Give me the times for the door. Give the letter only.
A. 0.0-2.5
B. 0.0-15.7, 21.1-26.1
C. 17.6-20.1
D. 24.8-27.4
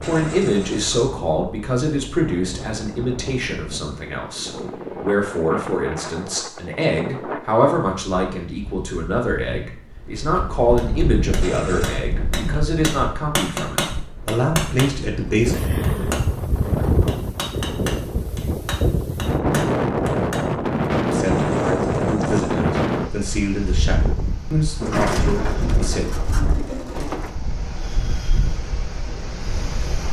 D.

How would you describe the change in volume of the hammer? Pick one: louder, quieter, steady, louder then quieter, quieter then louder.
louder then quieter.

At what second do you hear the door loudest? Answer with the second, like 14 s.
25 s.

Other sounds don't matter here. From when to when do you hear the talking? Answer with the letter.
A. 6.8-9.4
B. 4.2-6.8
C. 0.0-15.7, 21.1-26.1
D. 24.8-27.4
C.